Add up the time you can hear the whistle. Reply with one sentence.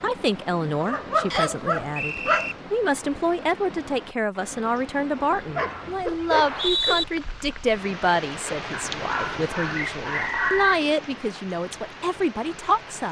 The whistle can be heard for 3 seconds in total.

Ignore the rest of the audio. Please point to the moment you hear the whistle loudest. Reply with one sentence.
The loudest moment of the whistle is at 7 seconds.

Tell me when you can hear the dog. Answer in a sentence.
The dog can be heard from 0.8 to 2.5 s, from 5.5 to 7.1 s and from 8.7 to 10.8 s.